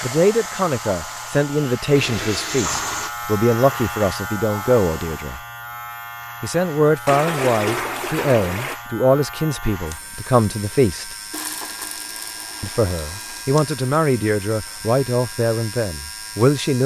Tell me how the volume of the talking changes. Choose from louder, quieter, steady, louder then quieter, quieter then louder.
steady.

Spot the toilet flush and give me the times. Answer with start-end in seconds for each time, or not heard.
1.9-3.1, 7.0-8.8, 11.3-13.4.